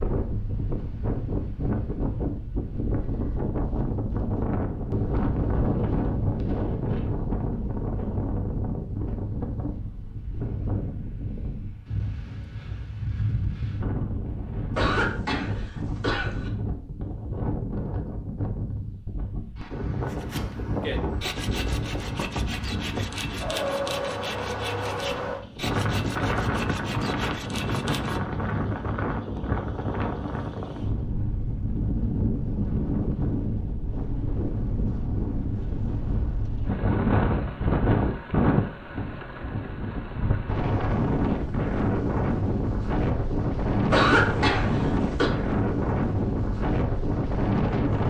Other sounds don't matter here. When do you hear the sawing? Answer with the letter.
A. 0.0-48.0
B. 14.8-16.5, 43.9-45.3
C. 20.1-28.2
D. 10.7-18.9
C.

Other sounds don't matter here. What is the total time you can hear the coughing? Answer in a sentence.
You can hear the coughing for 3 seconds altogether.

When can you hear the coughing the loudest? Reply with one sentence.
The loudest moment of the coughing is at 44 seconds.